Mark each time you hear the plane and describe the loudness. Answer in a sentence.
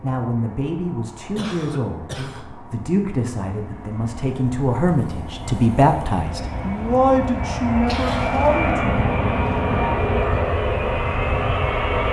You can hear the plane from 0.0 to 12.0 s, getting louder.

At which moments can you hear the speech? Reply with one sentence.
The speech can be heard from 0.0 to 9.1 s.